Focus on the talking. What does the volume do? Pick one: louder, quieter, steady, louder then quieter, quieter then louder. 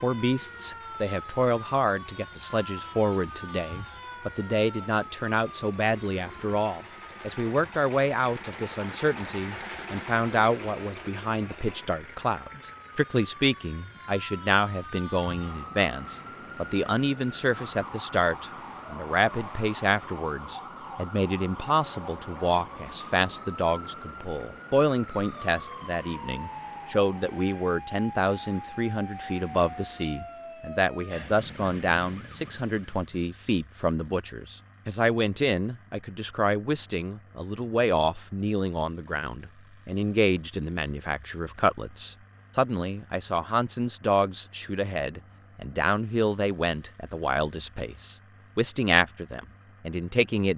steady.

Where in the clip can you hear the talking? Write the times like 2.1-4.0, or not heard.
0.0-50.5.